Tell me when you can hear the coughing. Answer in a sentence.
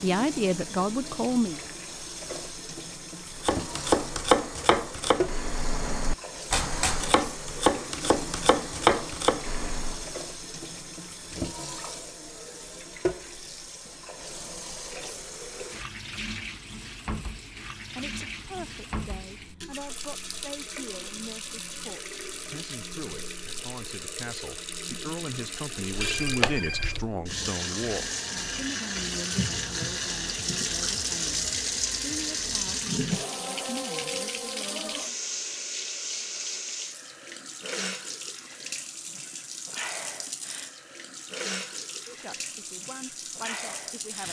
You can't hear the coughing here.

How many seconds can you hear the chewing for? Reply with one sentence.
The chewing can't be heard in this clip.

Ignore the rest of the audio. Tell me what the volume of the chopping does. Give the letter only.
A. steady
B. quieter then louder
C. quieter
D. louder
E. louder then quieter
B.